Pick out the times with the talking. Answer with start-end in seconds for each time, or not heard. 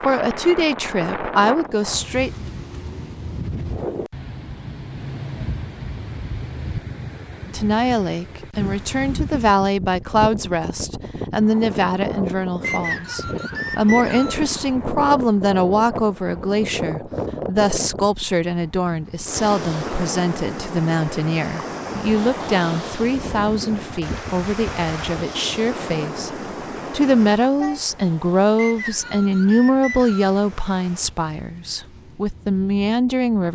0.0-2.3, 7.5-26.3, 26.9-33.4.